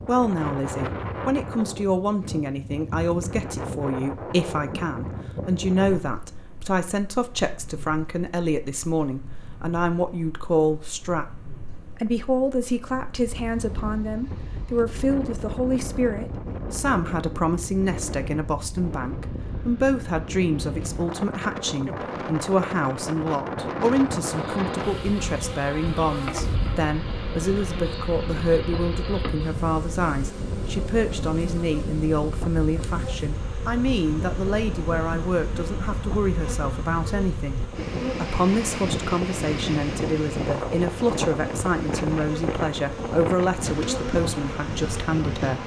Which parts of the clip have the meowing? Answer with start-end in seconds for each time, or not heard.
not heard.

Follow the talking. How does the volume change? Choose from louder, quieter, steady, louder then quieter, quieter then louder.
steady.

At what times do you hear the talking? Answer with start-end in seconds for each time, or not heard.
0.1-45.6.